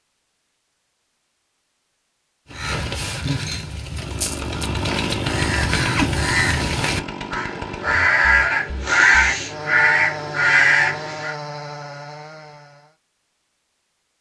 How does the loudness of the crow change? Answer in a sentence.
The volume of the crow goes up.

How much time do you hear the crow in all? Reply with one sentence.
You can hear the crow for 9 seconds altogether.